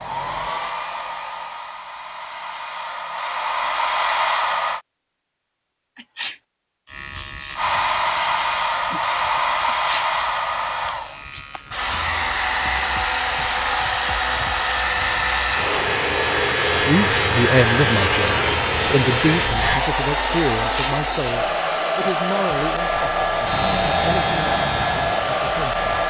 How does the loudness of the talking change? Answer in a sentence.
The volume of the talking goes down.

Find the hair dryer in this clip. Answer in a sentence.
The hair dryer can be heard from 0.0 to 4.8 s and from 7.5 to 26.0 s.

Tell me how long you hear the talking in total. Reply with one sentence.
The talking can be heard for 9 seconds in total.